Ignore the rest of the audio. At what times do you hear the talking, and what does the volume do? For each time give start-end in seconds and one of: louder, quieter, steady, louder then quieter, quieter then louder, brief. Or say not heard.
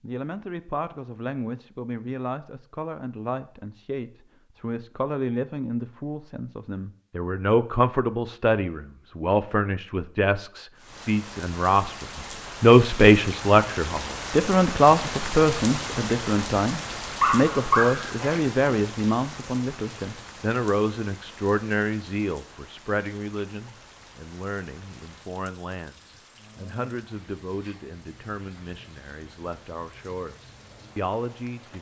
0.0-31.7 louder then quieter.